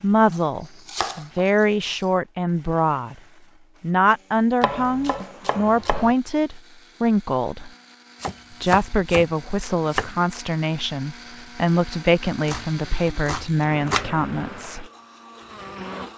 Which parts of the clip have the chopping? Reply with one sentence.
The chopping can be heard from 0.3 to 1.5 s, from 4.6 to 6.2 s, from 8.2 to 10.1 s and from 12.4 to 14.2 s.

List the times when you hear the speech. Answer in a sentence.
The speech can be heard from 0.0 to 3.1 s, from 3.8 to 7.7 s and from 8.6 to 14.8 s.